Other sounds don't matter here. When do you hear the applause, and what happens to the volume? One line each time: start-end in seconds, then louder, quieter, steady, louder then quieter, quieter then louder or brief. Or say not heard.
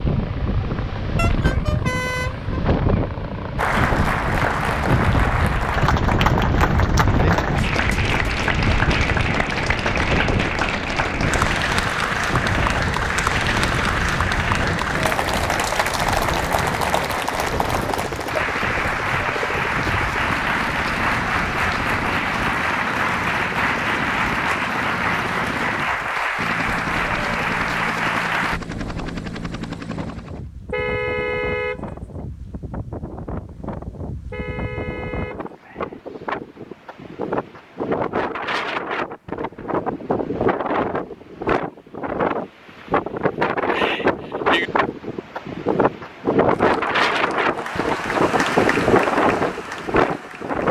3.5-28.6 steady
46.5-50.6 louder then quieter.